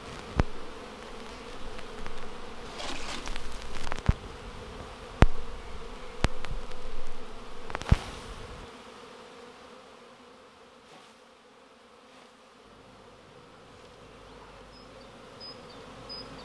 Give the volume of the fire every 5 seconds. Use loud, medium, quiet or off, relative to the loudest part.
quiet, loud, off, off.